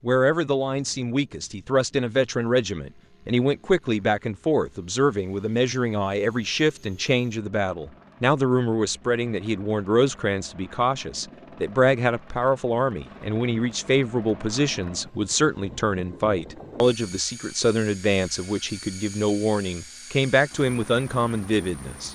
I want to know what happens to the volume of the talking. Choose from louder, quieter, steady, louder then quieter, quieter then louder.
steady.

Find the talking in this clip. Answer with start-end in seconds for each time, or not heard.
0.0-22.1.